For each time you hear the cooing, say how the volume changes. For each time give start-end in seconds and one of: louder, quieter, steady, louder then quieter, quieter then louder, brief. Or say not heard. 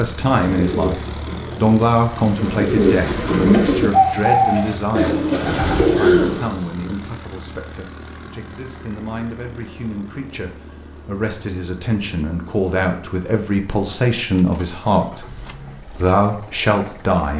0.1-6.7 louder.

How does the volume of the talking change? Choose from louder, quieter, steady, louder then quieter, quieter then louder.
quieter then louder.